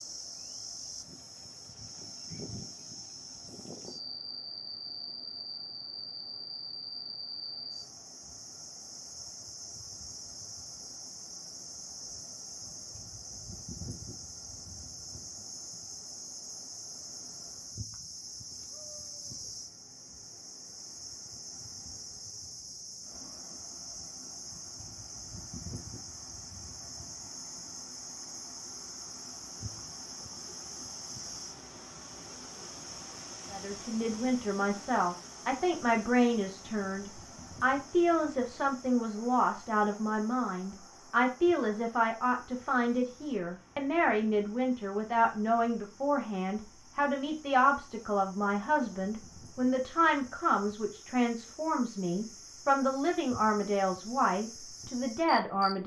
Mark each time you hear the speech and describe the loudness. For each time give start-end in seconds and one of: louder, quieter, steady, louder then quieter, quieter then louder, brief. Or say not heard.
33.5-55.8 steady.